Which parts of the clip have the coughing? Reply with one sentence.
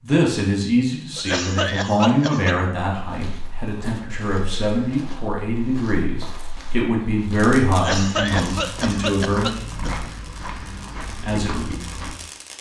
The coughing can be heard from 1.1 to 2.5 s and from 7.7 to 9.9 s.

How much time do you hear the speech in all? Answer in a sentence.
You can hear the speech for 10 seconds altogether.